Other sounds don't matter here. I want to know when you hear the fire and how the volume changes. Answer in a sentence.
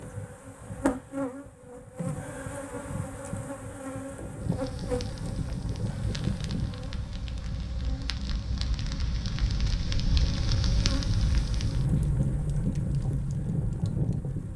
You can hear the fire from 4.3 to 14.5 s, getting louder.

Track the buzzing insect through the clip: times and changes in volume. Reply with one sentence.
The buzzing insect can be heard from 0.0 to 14.5 s, getting quieter then louder.